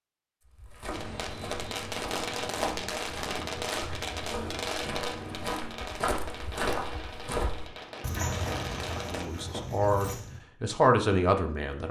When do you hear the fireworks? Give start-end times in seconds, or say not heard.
0.9-9.3.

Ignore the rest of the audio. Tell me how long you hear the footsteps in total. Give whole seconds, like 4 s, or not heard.
10 s.